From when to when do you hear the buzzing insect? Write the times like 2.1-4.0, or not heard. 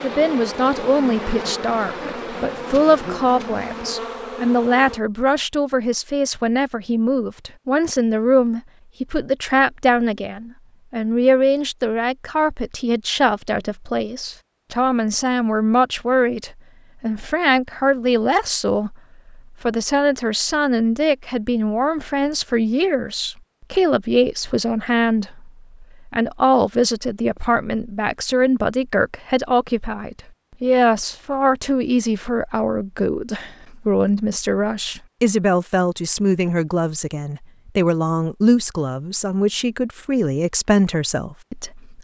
0.0-5.0.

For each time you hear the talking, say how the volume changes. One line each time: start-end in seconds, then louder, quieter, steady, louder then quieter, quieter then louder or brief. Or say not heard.
0.0-41.9 steady.